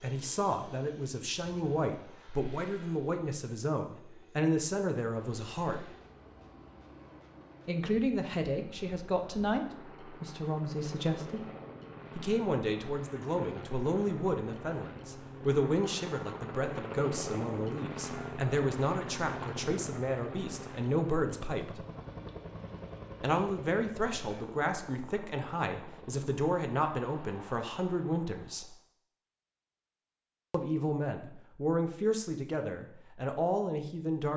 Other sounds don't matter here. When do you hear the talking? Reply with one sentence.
The talking can be heard from 0.0 to 5.8 s, from 7.7 to 11.4 s, from 12.2 to 21.8 s, from 23.2 to 28.7 s and from 30.5 to 34.3 s.